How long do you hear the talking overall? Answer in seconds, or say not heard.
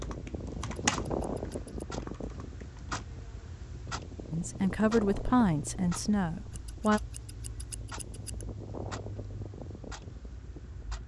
3 s.